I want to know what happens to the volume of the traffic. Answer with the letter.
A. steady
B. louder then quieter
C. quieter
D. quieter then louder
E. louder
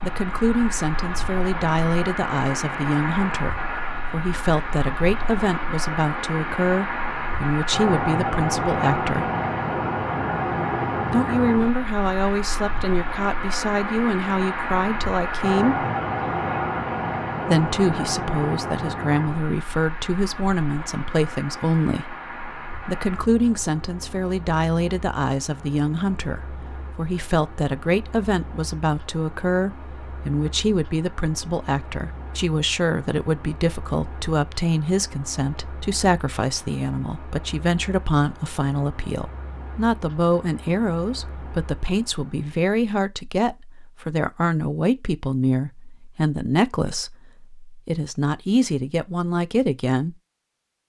C.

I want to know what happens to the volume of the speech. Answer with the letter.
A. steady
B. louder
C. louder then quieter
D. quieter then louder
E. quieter
A.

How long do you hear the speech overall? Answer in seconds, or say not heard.
46 s.